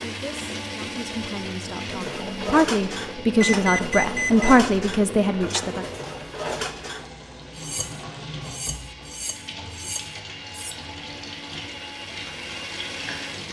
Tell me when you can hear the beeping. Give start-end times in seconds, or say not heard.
3.4-4.6.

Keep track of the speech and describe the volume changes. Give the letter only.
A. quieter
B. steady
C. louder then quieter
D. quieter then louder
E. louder
E.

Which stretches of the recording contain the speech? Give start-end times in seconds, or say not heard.
0.0-5.8.